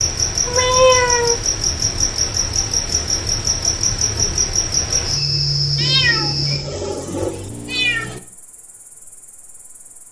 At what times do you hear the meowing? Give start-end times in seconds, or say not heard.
0.5-1.4, 5.8-8.2.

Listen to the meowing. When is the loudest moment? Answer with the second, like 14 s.
1 s.